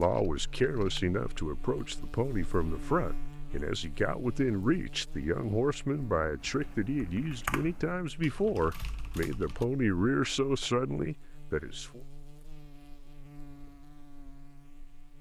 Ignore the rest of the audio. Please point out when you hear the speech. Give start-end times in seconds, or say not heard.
0.0-12.0.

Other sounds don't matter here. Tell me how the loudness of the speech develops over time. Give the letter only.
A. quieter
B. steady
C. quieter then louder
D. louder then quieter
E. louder
B.